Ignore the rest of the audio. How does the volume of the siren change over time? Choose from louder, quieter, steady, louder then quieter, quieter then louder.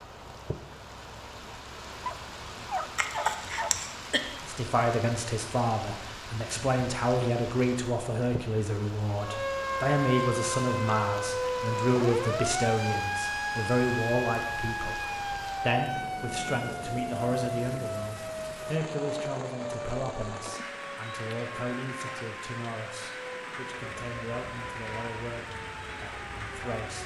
quieter.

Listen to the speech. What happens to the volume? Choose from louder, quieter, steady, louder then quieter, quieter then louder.
quieter.